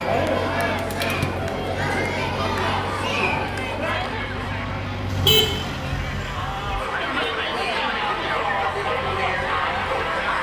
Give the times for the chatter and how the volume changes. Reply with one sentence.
The chatter can be heard from 0.0 to 10.3 s, getting quieter then louder.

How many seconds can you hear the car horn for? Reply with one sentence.
You can hear the car horn for 2 seconds altogether.